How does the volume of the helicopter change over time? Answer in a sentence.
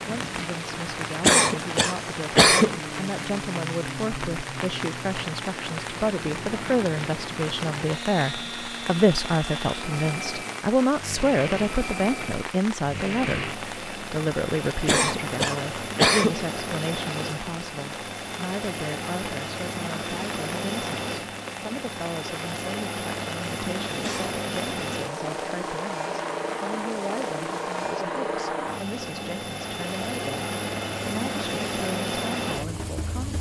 The volume of the helicopter goes up.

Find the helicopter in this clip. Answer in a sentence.
The helicopter can be heard from 0.0 to 33.3 s.